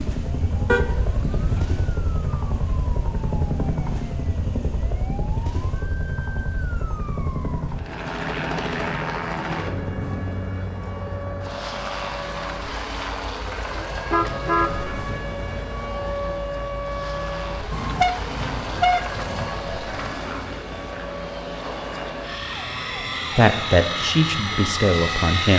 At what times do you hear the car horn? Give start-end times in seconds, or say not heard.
0.7-1.6, 13.9-14.7, 17.7-19.5.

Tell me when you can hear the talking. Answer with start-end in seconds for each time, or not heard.
23.4-25.5.